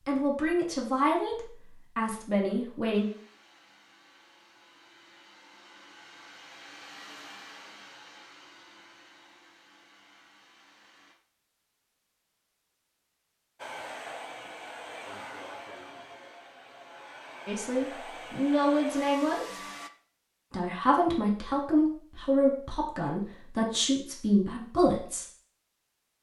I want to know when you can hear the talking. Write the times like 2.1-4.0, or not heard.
0.1-3.0, 17.4-19.4, 20.5-25.2.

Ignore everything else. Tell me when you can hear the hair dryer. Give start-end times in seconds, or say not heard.
2.9-11.2, 13.6-19.9.